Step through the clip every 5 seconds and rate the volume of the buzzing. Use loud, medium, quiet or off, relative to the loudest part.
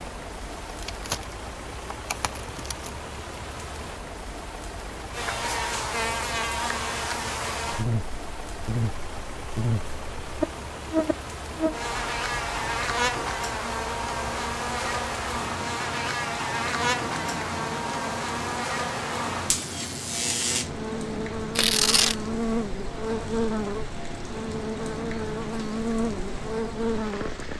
off, loud, loud, loud, loud, loud.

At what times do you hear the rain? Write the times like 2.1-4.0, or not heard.
0.0-27.5.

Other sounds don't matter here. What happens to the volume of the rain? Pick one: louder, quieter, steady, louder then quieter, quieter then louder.
steady.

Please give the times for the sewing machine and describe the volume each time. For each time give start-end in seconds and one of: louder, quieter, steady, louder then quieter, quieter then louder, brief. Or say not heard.
not heard.